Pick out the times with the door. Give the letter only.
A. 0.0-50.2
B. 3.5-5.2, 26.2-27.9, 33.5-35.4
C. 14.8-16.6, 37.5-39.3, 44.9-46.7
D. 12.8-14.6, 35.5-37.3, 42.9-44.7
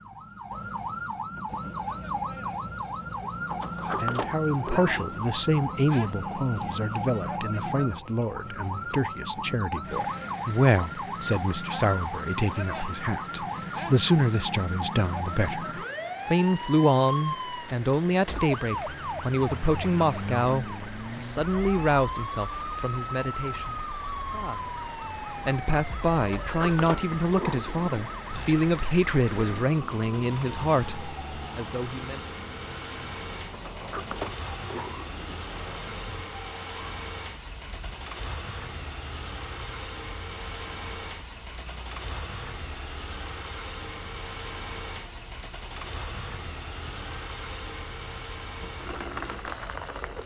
B.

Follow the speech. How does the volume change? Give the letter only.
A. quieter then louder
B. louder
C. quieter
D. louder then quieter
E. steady
E.